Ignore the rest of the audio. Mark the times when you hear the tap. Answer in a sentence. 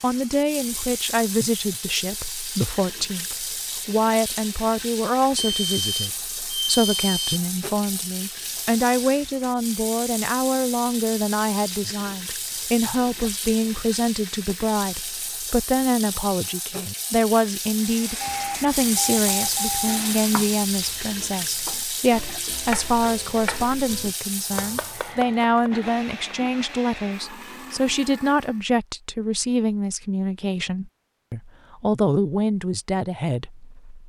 The tap can be heard from 0.0 to 25.1 s.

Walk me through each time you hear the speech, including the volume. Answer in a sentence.
The speech can be heard from 0.0 to 34.0 s, at a steady volume.